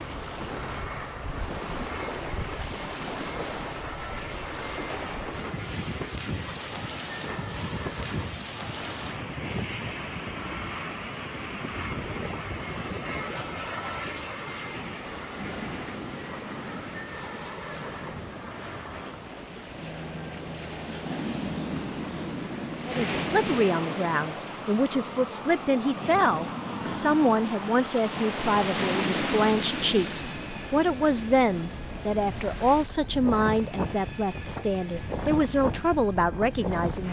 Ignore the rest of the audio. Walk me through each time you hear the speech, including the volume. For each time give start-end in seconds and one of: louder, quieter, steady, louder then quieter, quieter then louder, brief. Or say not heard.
22.9-37.0 steady.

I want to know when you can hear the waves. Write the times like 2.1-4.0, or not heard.
0.0-37.0.